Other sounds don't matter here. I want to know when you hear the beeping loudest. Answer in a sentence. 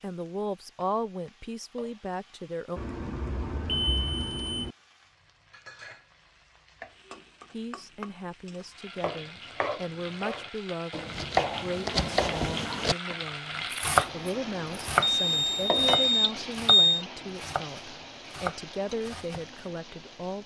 The loudest moment of the beeping is at 17 seconds.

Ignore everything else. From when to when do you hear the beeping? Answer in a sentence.
You can hear the beeping from 2.8 to 4.8 s and from 15.0 to 17.1 s.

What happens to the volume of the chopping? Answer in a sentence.
The loudness of the chopping goes up, then down.